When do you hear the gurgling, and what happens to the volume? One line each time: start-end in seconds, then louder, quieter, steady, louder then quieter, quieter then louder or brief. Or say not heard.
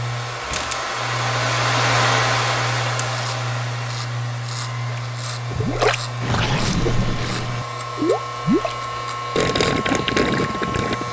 4.9-11.0 steady.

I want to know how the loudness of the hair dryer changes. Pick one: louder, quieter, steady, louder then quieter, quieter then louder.
quieter.